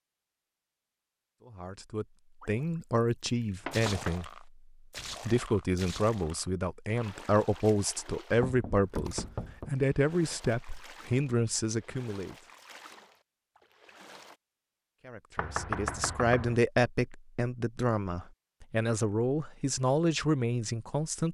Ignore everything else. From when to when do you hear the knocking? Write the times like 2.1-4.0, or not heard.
3.6-4.2, 8.3-9.7, 15.3-16.6.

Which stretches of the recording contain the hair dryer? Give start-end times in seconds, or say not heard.
not heard.